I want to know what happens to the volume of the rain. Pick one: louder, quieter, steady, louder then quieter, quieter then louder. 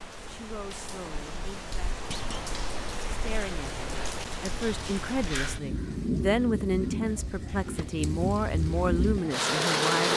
louder.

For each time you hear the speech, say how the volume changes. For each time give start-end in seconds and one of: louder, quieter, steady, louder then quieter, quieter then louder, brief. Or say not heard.
0.2-10.1 louder.